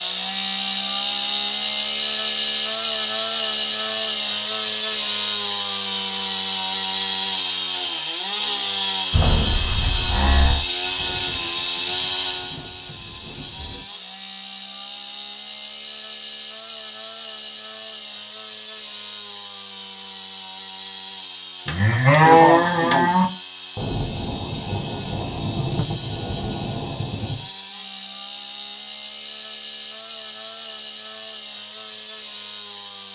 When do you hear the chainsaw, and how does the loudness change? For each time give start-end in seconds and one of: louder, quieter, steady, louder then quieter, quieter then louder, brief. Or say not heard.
0.0-33.1 quieter.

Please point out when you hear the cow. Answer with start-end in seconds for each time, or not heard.
9.1-10.7, 21.6-23.2.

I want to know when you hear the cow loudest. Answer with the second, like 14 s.
22 s.